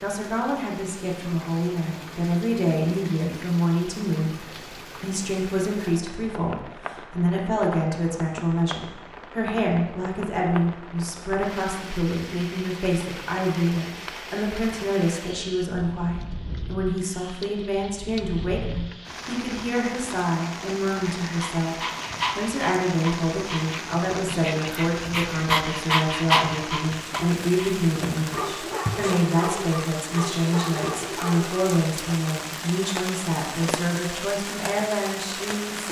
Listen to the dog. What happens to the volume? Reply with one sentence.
The volume of the dog goes up, then down.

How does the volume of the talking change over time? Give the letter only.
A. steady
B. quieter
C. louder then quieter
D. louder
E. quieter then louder
A.